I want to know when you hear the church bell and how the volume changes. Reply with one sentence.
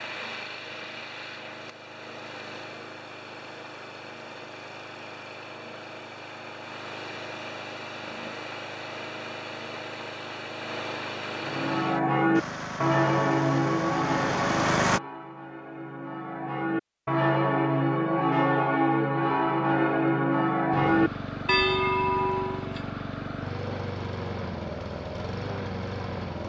You can hear the church bell from 11.4 to 22.8 s, getting quieter then louder.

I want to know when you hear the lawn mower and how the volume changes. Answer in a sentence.
The lawn mower can be heard from 0.0 to 15.0 s, getting louder; and from 20.7 to 26.4 s, at a steady volume.